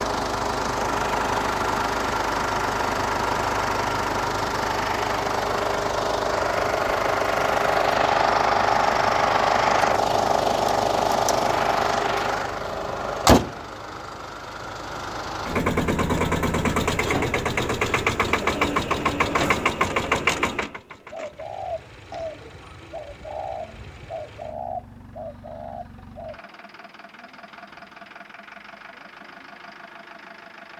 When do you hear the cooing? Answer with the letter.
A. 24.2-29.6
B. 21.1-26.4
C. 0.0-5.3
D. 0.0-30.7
B.